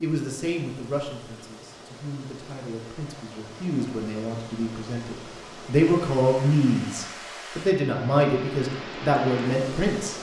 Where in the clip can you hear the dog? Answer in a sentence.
You can't hear the dog here.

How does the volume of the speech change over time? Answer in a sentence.
The volume of the speech goes up.